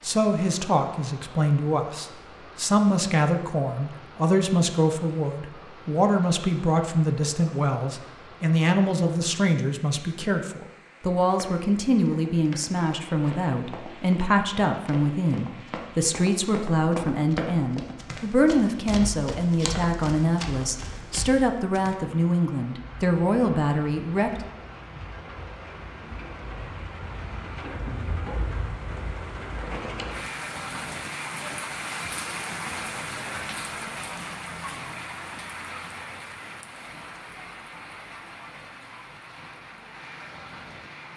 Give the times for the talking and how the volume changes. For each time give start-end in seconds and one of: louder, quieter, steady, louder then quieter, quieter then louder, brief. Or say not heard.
0.0-24.4 steady.